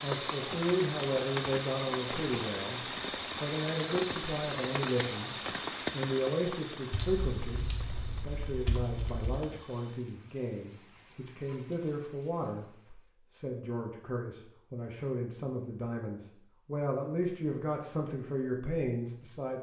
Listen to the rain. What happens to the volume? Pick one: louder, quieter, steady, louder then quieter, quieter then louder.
quieter.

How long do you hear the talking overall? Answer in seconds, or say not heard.
19 s.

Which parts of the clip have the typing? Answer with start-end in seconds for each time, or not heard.
6.9-9.4.